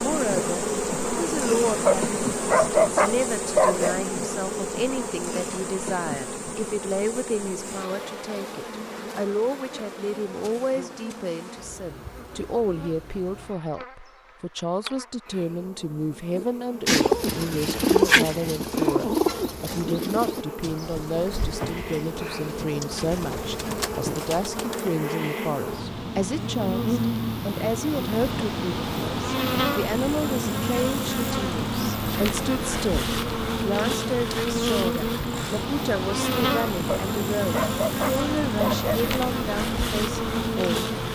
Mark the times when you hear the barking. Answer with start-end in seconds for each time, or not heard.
1.9-4.0, 36.9-39.1.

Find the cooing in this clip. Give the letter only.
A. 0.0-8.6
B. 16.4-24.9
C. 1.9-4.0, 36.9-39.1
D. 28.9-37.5
B.